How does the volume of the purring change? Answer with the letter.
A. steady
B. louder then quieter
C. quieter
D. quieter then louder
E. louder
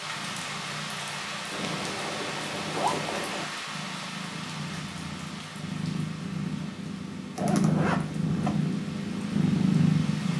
E.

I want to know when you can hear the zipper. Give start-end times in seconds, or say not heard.
1.5-3.5, 7.3-8.6.